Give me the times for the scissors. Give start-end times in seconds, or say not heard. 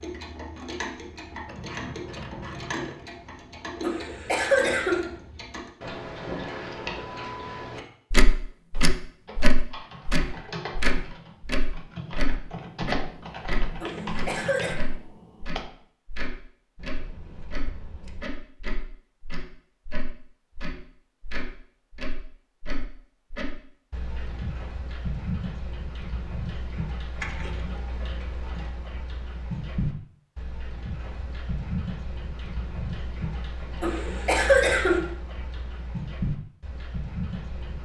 1.4-3.0, 16.8-18.3, 27.1-27.8.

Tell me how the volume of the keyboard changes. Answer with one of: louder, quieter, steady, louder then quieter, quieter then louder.
louder.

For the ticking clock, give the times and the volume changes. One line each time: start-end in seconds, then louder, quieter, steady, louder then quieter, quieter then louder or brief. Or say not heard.
0.0-37.7 louder then quieter.